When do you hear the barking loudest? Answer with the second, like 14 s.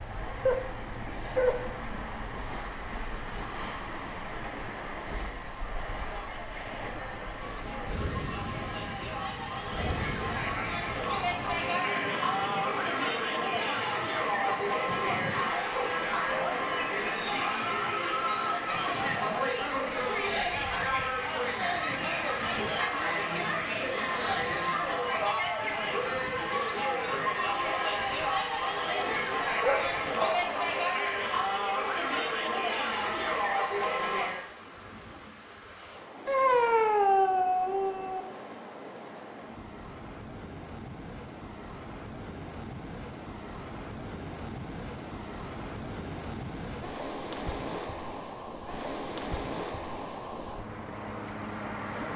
37 s.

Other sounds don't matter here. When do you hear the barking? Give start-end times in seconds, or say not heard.
0.5-2.0, 29.4-30.9, 36.2-38.2.